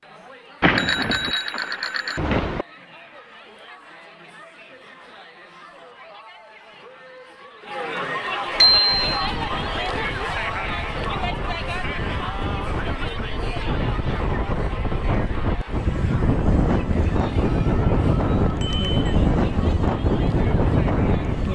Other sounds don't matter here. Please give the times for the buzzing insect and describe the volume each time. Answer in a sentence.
The buzzing insect can't be heard in this clip.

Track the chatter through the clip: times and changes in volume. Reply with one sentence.
The chatter can be heard from 0.0 to 21.5 s, getting louder then quieter.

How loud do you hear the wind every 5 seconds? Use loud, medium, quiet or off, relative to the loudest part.
off, quiet, medium, loud, loud.